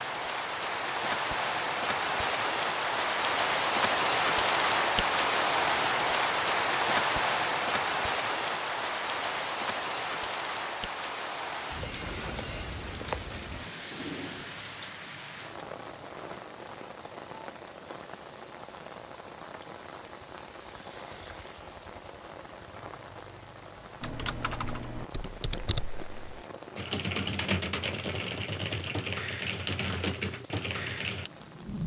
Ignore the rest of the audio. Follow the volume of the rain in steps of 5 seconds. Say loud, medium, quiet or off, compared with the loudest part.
loud, loud, medium, quiet, quiet, quiet, quiet.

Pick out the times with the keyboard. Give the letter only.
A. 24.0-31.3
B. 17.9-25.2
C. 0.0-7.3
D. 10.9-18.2
A.